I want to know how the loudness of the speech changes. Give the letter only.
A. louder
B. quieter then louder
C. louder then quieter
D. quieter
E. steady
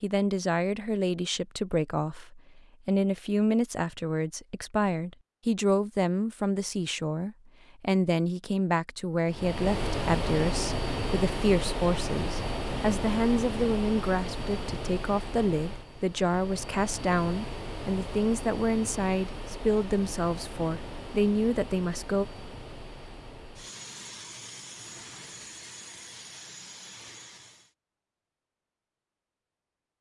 E.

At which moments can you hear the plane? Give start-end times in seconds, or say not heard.
9.2-27.7.